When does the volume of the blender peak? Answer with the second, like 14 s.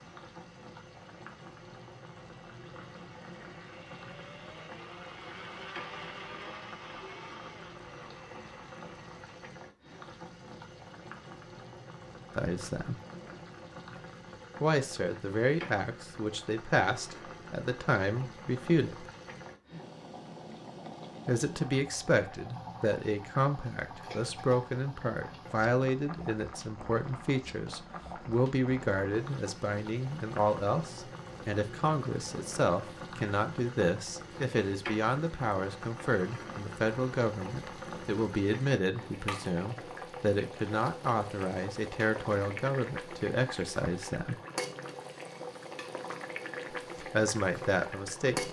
6 s.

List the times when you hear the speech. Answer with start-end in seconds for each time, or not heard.
12.3-12.9, 14.6-19.1, 21.2-44.4, 47.0-48.4.